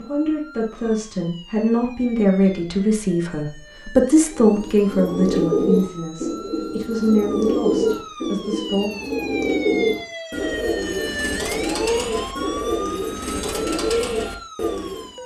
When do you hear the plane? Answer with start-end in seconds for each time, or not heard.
not heard.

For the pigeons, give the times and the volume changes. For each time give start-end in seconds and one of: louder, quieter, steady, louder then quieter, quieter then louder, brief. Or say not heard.
4.3-15.1 steady.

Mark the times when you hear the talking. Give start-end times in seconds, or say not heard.
0.0-8.9.